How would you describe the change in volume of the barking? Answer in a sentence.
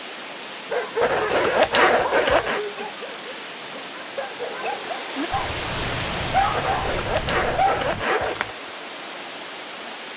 The loudness of the barking goes down, then up.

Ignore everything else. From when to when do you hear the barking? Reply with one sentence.
The barking can be heard from 0.7 to 8.1 s.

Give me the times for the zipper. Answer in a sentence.
The zipper can be heard from 1.0 to 2.6 s and from 6.5 to 8.6 s.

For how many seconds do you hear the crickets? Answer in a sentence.
The crickets can't be heard in this clip.